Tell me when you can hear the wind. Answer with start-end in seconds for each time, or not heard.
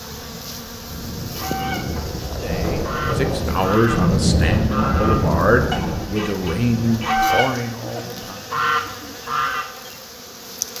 0.0-7.2.